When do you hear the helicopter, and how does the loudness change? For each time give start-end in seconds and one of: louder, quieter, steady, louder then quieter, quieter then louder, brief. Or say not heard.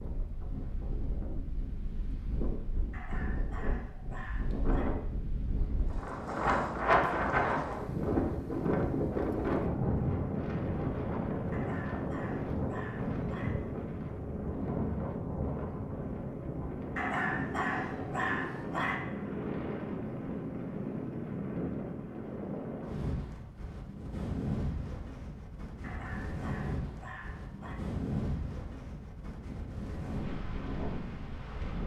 not heard.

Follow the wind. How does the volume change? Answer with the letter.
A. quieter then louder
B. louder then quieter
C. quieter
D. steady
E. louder
B.